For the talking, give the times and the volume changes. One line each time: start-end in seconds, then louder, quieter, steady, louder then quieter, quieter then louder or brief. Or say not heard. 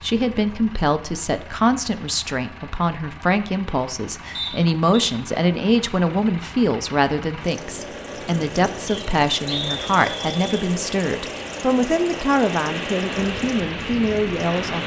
0.0-14.8 steady.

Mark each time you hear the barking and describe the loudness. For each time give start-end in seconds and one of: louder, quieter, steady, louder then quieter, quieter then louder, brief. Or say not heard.
not heard.